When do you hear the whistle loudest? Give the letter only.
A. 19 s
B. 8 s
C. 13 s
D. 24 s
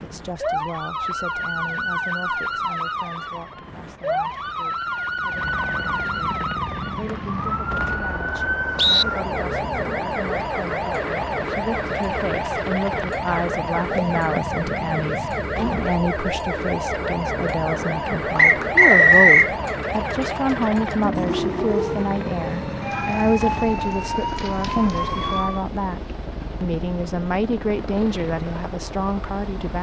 A.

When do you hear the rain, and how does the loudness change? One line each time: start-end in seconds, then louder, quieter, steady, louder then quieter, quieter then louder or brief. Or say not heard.
not heard.